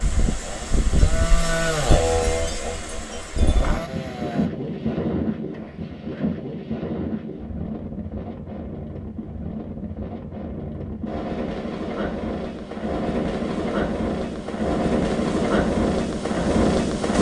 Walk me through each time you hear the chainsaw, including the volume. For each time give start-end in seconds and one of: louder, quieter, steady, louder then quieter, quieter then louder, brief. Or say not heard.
0.0-4.5 louder then quieter.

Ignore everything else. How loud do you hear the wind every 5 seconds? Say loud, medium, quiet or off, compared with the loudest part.
medium, medium, medium, loud.